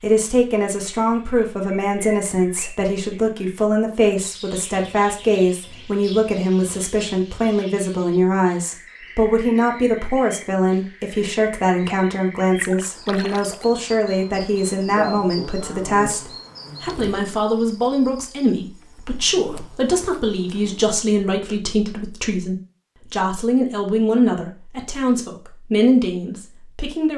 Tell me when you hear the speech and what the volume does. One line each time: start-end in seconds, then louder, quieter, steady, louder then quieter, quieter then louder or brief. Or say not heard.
0.0-27.1 steady.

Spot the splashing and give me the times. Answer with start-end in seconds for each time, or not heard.
12.6-13.7.